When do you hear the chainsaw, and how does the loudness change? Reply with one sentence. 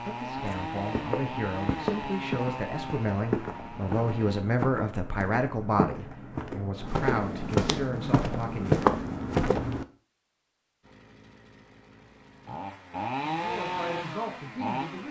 The chainsaw can be heard from 0.0 to 4.5 s, getting quieter; and from 10.8 to 15.0 s, getting louder then quieter.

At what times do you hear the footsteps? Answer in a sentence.
The footsteps can be heard from 0.3 to 9.8 s.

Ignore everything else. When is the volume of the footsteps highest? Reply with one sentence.
The volume of the footsteps peaks at 9 seconds.